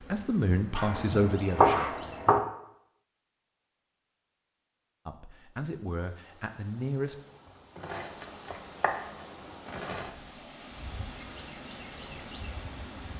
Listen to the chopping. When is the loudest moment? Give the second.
2 s.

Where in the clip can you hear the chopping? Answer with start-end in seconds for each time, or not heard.
0.8-2.4, 7.8-10.1.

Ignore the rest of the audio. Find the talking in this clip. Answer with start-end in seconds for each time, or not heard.
0.0-1.9, 5.0-7.2.